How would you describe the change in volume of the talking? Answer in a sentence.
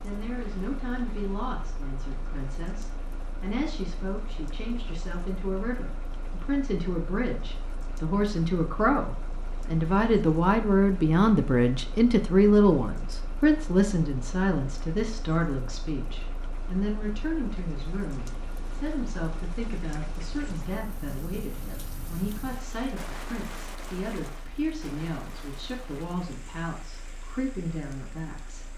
The volume of the talking goes up, then down.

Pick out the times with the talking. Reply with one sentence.
You can hear the talking from 0.0 to 28.7 s.